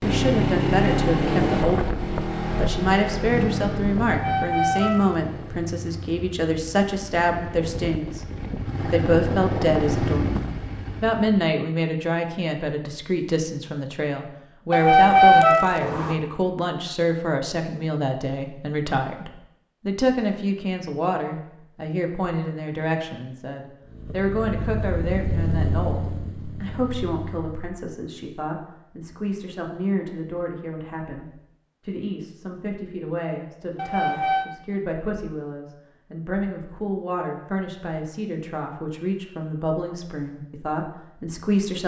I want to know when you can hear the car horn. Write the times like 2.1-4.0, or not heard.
4.0-5.2, 14.7-16.1, 33.8-34.5.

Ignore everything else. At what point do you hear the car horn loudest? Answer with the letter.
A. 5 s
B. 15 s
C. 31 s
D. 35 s
B.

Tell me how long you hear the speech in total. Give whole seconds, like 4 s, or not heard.
42 s.